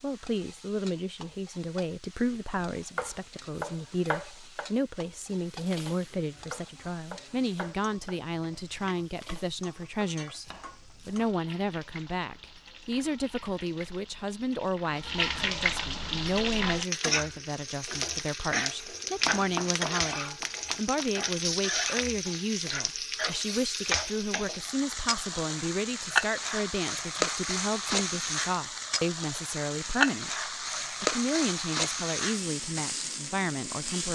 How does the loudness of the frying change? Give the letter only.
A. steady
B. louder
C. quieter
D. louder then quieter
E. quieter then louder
B.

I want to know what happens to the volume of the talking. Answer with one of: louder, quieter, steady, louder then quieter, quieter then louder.
steady.